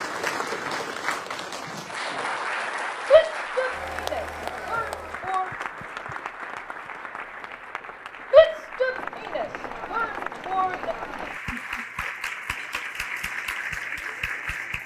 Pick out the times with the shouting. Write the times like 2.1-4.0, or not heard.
3.1-5.5, 8.3-10.9.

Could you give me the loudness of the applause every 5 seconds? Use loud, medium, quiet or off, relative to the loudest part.
loud, medium, loud.